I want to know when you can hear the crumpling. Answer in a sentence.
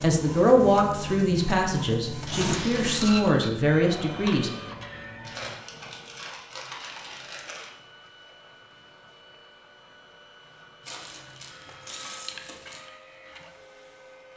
You can hear the crumpling from 2.2 to 3.2 s, from 5.2 to 7.7 s and from 10.8 to 12.8 s.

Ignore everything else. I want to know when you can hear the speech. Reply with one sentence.
You can hear the speech from 0.0 to 4.5 s.